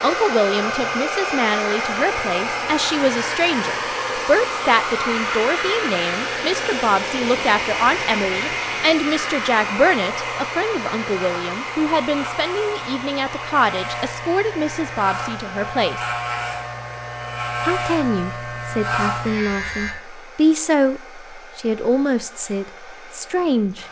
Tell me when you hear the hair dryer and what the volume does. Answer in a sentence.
You can hear the hair dryer from 0.0 to 23.8 s, getting quieter.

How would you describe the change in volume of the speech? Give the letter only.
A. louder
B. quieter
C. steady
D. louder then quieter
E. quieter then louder
C.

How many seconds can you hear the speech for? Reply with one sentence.
The speech can be heard for 22 seconds in total.